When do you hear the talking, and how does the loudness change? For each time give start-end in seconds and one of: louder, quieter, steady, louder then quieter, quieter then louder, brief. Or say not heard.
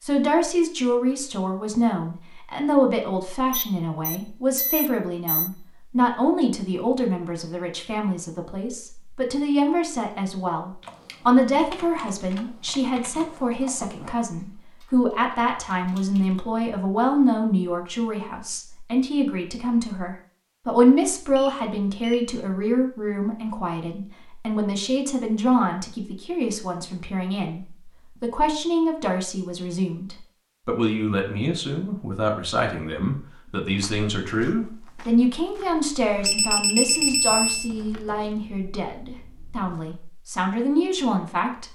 0.0-41.7 steady.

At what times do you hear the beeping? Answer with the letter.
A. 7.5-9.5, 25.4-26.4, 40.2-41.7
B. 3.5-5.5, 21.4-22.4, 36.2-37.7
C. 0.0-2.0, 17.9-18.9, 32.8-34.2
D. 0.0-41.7
B.